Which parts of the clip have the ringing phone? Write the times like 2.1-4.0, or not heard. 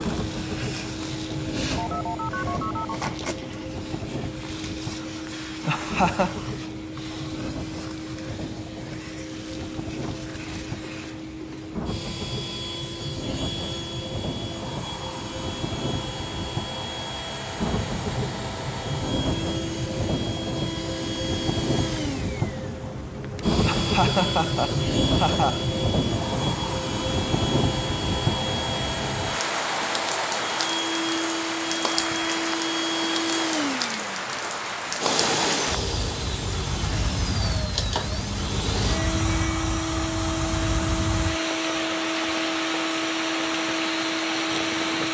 1.8-2.9.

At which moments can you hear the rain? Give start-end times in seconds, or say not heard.
0.0-45.0.